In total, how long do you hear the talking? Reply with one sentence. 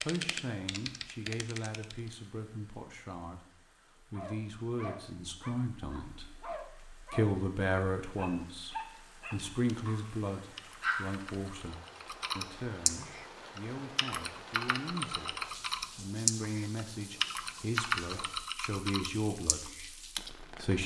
You can hear the talking for 21 seconds altogether.